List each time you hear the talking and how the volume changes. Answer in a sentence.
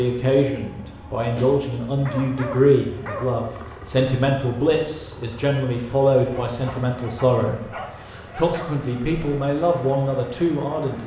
You can hear the talking from 0.0 to 11.0 s, at a steady volume.